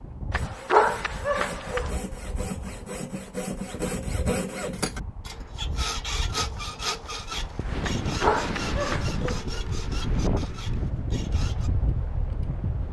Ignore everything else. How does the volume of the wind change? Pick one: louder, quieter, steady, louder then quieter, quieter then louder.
louder.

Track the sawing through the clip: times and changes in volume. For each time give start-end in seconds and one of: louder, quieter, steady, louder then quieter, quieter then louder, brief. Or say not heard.
0.3-11.7 louder then quieter.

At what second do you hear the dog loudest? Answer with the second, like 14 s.
1 s.